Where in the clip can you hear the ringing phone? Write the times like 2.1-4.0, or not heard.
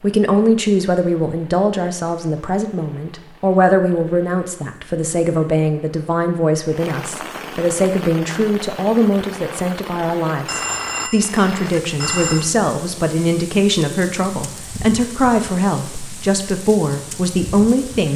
10.4-12.5.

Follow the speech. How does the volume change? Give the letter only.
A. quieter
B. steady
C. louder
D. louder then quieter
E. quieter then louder
B.